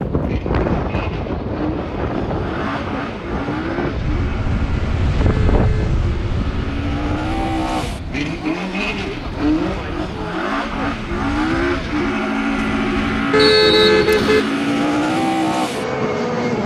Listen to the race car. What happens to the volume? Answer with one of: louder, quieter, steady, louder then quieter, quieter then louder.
louder.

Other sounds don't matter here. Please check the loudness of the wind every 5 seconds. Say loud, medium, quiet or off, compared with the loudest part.
loud, loud, medium, medium.